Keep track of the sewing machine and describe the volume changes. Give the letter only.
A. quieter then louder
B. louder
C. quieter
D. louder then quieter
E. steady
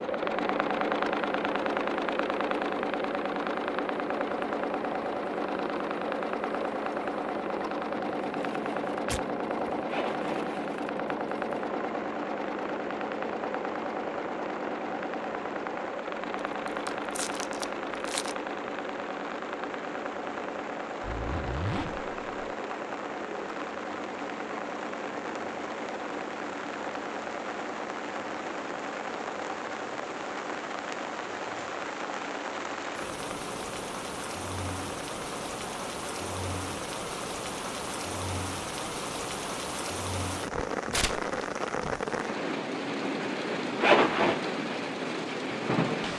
C.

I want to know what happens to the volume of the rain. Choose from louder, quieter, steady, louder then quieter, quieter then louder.
louder.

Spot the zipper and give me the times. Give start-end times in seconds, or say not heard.
9.8-10.3, 21.0-22.6, 43.8-44.4.